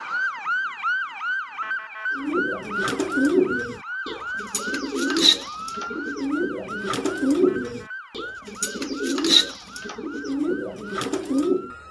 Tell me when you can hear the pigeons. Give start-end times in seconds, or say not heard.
2.1-11.7.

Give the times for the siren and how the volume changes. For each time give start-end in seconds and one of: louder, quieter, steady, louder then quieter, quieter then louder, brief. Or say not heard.
0.0-11.8 quieter.